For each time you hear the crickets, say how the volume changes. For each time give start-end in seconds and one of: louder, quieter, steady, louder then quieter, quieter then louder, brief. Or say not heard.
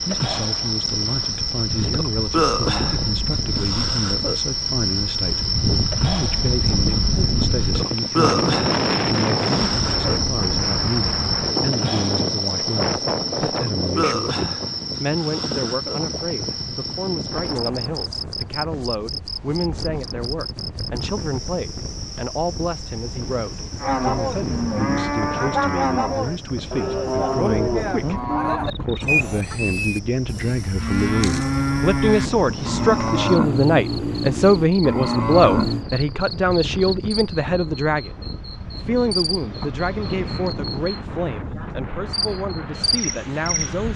0.0-43.9 quieter then louder.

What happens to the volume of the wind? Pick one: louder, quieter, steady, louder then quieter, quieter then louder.
quieter.